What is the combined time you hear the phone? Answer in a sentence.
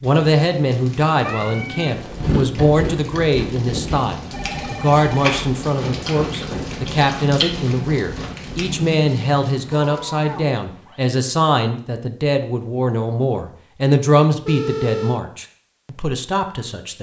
You can hear the phone for 2 seconds altogether.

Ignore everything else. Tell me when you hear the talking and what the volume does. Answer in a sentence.
You can hear the talking from 0.0 to 16.9 s, at a steady volume.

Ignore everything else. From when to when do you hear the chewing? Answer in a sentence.
You can hear the chewing from 1.9 to 8.8 s.